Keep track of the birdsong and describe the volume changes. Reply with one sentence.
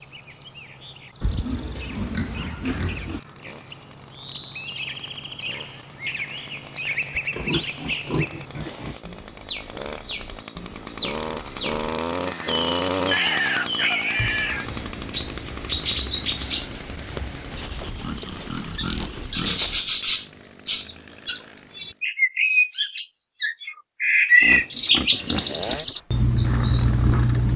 The loudness of the birdsong goes up.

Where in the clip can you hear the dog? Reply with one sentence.
The dog can't be heard in this clip.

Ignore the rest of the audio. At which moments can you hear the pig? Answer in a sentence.
The pig can be heard from 1.2 to 3.2 s, from 7.1 to 9.0 s, from 13.1 to 14.7 s, from 17.5 to 19.9 s and from 24.4 to 25.9 s.